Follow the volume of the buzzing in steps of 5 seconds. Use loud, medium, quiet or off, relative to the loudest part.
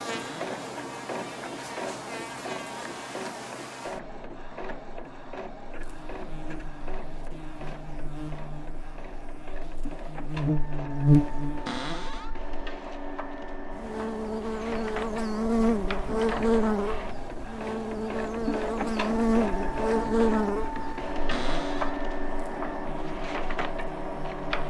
quiet, quiet, loud, loud, medium.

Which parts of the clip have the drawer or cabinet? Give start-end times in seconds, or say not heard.
0.1-0.6, 11.7-12.3, 21.3-21.9.